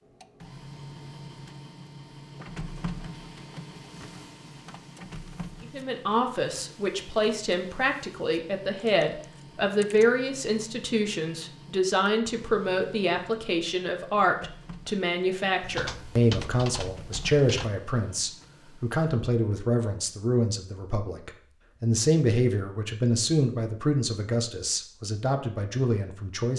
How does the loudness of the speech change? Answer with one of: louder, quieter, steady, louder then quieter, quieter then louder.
steady.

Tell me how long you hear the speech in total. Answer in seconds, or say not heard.
21 s.